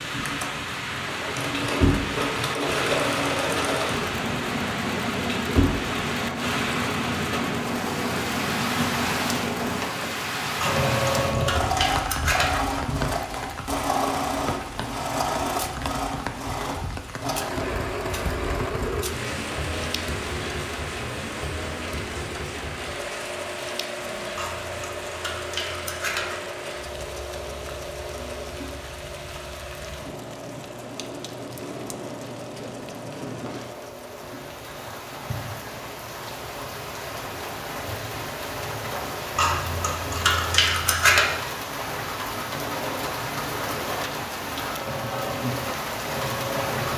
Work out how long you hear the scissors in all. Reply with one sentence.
You can hear the scissors for 6 seconds altogether.